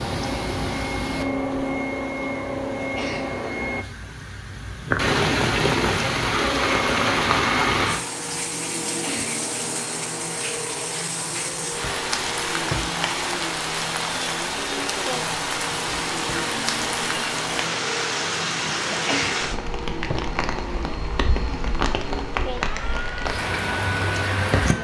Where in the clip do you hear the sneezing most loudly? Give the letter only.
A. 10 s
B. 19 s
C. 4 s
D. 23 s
B.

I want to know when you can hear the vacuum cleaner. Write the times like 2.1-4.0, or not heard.
0.0-3.9, 6.3-24.7.